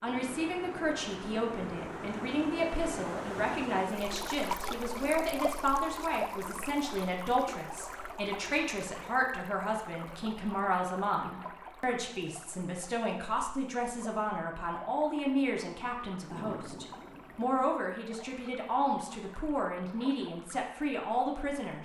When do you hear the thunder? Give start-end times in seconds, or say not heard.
16.2-17.5.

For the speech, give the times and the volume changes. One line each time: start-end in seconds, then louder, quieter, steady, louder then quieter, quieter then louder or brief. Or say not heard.
0.0-21.7 steady.